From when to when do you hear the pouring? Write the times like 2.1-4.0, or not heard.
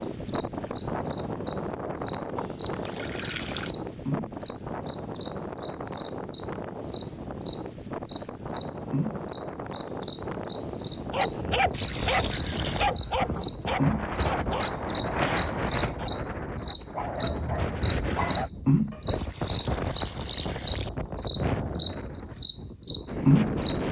2.4-3.8, 11.7-12.9, 19.1-20.9.